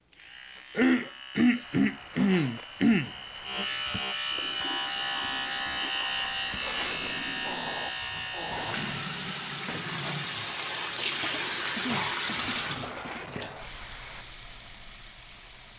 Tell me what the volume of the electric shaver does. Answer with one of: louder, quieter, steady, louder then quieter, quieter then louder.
louder.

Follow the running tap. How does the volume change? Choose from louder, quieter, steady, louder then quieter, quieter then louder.
louder then quieter.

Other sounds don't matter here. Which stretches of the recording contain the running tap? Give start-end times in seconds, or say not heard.
4.4-15.7.